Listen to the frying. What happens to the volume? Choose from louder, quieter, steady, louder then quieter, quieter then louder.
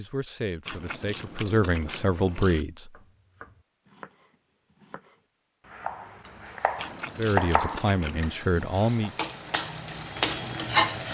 louder.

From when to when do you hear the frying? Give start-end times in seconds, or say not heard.
6.2-11.0.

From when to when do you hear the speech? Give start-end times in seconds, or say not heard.
0.0-2.9, 7.2-9.1.